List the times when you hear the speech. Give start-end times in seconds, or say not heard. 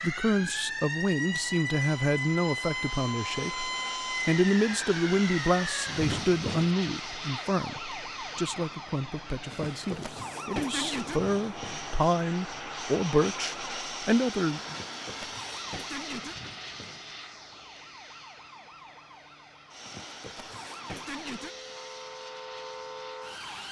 0.0-14.8.